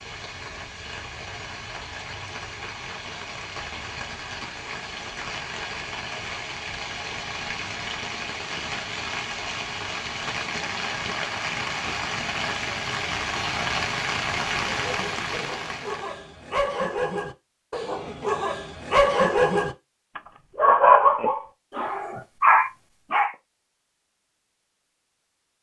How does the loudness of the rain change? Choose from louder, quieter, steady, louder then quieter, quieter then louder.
louder.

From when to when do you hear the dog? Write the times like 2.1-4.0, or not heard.
14.8-23.3.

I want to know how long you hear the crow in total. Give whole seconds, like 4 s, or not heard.
not heard.